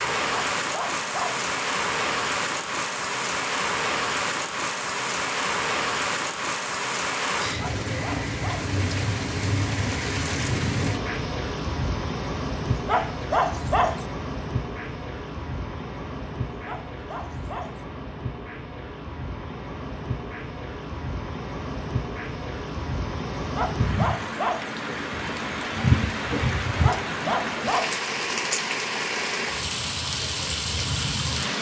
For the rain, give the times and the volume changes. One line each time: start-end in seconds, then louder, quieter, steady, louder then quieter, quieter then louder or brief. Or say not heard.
0.0-31.5 quieter then louder.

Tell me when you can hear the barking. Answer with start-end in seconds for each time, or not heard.
0.3-1.4, 7.5-8.8, 12.8-14.1, 16.4-17.8, 23.4-24.7, 26.8-28.0.